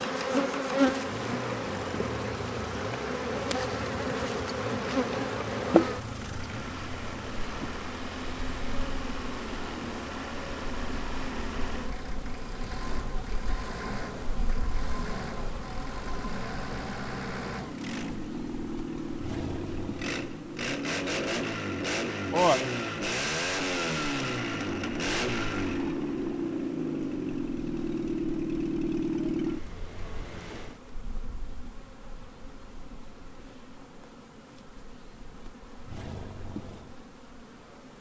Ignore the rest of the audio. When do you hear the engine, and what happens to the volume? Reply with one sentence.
The engine can be heard from 0.0 to 30.8 s, getting louder.